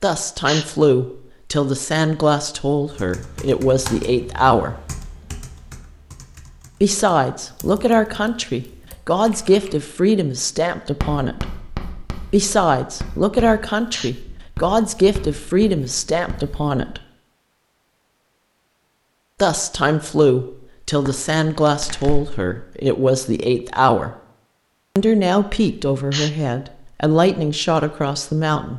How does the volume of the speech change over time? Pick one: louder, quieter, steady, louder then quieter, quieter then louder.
steady.